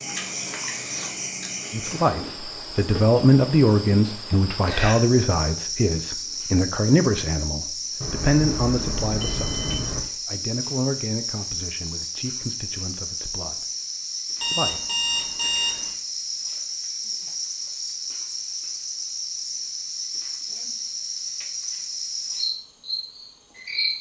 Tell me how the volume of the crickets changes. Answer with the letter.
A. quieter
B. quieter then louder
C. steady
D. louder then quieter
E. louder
C.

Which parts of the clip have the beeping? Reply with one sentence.
The beeping can be heard from 8.0 to 10.0 s and from 14.4 to 15.9 s.